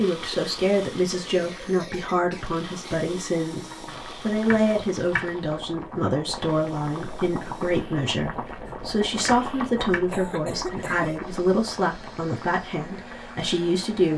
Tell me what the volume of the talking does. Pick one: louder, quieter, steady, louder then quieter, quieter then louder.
steady.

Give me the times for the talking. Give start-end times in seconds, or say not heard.
0.0-14.1.